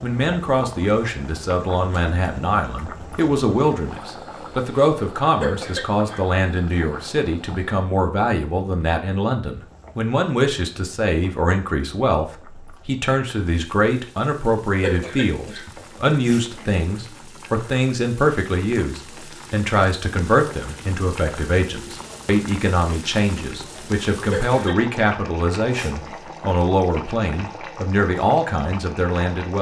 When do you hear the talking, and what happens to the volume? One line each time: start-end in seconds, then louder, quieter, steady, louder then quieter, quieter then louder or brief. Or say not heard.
0.0-29.5 steady.